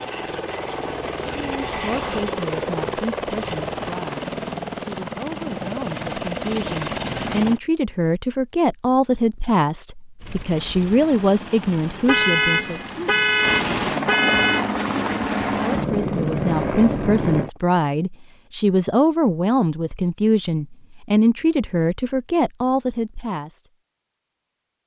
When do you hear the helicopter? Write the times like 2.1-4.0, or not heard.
0.0-7.6, 10.2-17.5.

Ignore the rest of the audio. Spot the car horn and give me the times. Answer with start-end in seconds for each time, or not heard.
12.1-14.7.